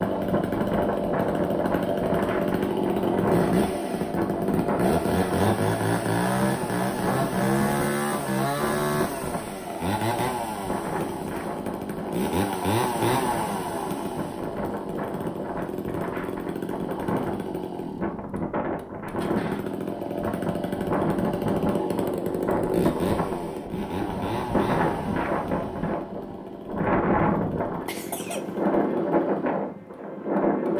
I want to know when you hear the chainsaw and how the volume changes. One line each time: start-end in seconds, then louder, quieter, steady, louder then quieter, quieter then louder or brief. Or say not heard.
0.0-30.7 quieter.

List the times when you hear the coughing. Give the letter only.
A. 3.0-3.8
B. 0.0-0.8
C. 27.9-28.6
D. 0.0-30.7
C.